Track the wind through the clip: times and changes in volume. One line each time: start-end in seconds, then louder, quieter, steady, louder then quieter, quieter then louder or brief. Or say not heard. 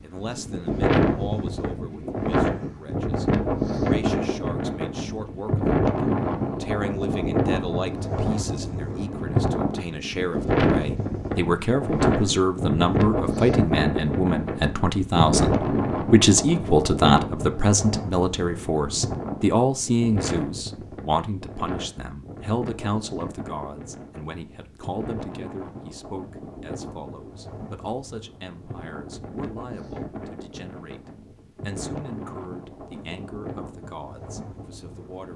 0.0-35.3 quieter.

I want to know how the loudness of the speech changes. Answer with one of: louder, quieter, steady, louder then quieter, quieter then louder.
louder then quieter.